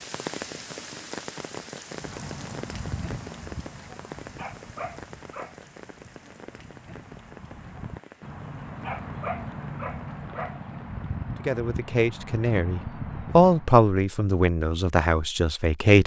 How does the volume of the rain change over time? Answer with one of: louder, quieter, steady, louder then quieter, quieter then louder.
quieter.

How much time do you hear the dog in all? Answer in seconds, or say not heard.
3 s.